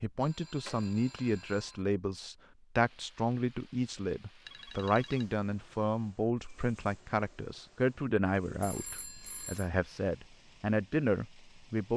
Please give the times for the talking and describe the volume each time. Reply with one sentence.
The talking can be heard from 0.0 to 11.9 s, at a steady volume.